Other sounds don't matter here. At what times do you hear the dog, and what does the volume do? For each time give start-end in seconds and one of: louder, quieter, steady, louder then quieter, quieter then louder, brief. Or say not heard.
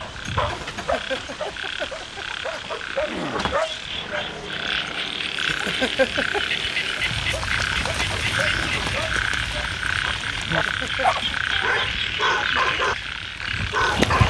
0.0-4.5 quieter then louder
7.2-14.2 louder.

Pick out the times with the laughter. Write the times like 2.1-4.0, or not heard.
0.6-2.8, 5.3-6.4, 10.6-11.1.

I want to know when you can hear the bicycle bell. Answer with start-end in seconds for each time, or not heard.
not heard.